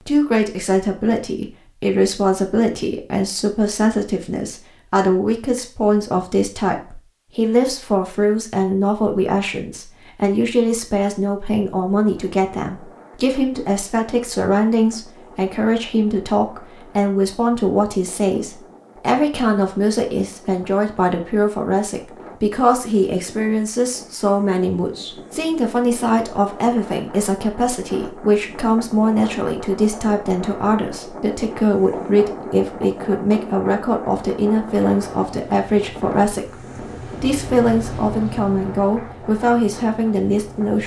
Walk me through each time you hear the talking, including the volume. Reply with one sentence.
The talking can be heard from 0.1 to 40.8 s, at a steady volume.